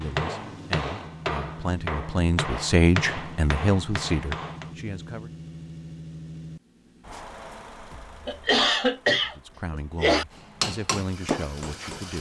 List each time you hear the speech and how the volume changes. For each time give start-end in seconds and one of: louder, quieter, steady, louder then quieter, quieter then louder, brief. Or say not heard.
0.0-5.3 louder then quieter
9.2-12.1 brief.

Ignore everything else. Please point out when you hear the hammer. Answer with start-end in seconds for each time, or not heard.
0.0-4.8, 10.6-12.1.